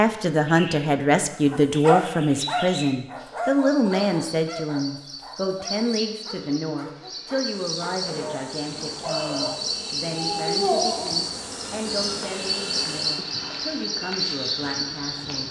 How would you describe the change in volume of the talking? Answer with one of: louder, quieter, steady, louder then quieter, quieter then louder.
quieter.